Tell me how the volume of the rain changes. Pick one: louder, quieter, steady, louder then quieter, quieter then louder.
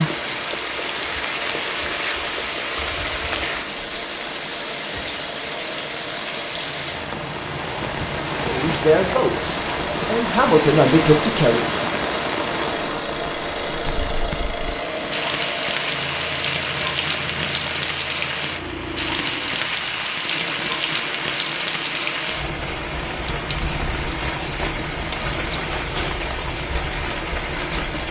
steady.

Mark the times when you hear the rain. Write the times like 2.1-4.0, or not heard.
0.0-28.0.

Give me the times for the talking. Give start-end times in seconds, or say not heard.
8.4-11.7.